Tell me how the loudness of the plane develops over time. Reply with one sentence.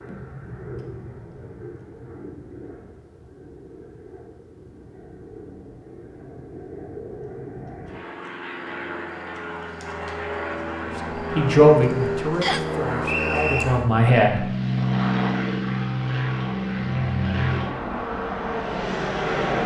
The volume of the plane goes up.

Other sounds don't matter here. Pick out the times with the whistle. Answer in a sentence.
The whistle can be heard from 12.4 to 13.7 s.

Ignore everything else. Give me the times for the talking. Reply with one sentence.
You can hear the talking from 10.8 to 14.4 s.